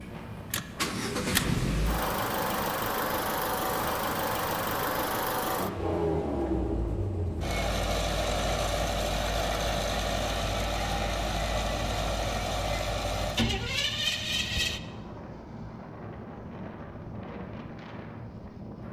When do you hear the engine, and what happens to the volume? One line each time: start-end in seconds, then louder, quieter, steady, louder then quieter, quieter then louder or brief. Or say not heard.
0.0-14.8 steady.